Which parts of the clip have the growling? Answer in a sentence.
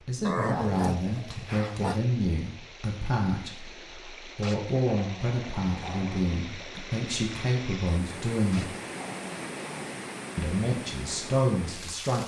You can hear the growling from 0.2 to 2.0 s, from 4.4 to 6.3 s and from 8.5 to 9.9 s.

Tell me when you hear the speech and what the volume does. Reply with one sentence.
The speech can be heard from 0.0 to 8.8 s, at a steady volume; and briefly from 10.3 to 12.2 s.